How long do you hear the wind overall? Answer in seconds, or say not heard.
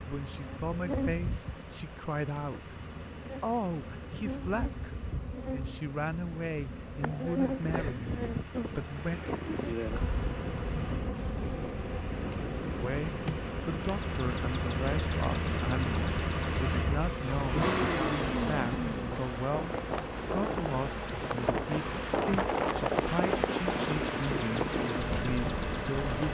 19 s.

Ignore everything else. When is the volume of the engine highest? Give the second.
18 s.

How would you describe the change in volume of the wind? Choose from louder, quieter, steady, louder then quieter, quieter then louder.
louder.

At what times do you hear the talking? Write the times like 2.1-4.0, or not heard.
0.1-9.2, 12.8-26.2.